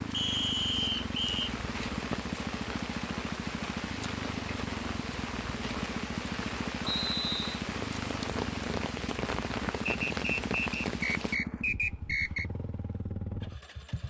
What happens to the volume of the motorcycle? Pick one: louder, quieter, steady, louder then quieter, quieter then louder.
steady.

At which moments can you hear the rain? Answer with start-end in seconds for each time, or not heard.
0.0-11.4.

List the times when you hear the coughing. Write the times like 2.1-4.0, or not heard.
not heard.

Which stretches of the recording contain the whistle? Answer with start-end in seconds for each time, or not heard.
0.1-1.5, 6.8-7.6, 10.1-12.4.